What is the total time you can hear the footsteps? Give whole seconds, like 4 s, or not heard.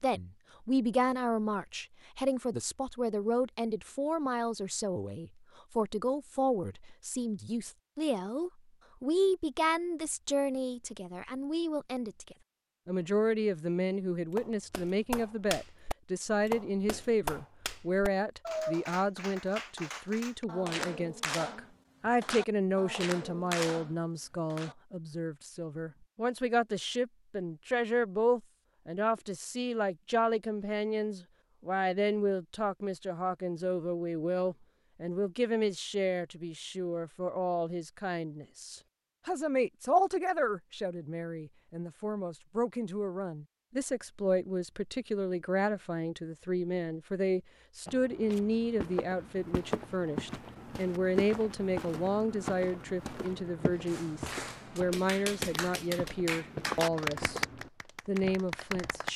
11 s.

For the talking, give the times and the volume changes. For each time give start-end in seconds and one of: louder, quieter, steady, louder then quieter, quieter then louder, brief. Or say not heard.
0.0-57.5 steady
58.0-59.1 brief.